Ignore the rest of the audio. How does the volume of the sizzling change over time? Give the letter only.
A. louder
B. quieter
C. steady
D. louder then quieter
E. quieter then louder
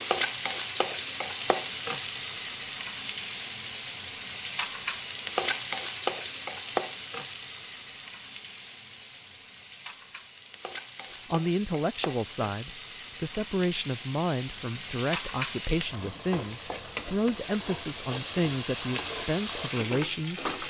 E.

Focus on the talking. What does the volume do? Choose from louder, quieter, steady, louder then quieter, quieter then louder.
steady.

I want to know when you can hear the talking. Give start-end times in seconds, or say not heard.
11.3-20.6.